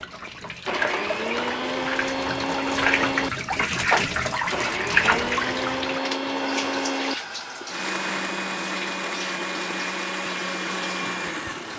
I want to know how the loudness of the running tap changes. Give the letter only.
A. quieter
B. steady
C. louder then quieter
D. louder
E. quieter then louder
C.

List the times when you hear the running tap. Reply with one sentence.
You can hear the running tap from 0.0 to 11.7 s.